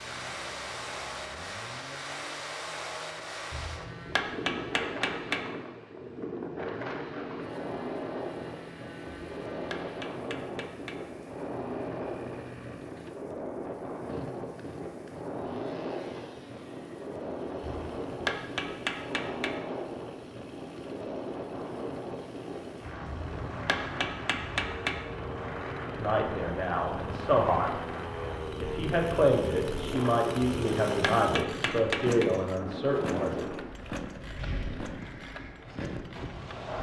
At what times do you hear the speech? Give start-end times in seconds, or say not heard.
25.9-27.8, 28.6-33.5.